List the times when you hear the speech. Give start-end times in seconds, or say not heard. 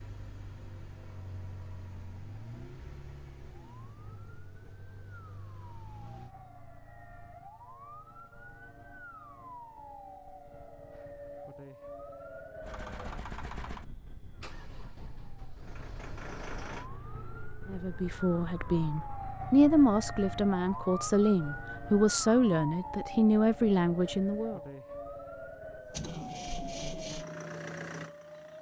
17.7-24.6.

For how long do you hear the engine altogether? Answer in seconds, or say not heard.
13 s.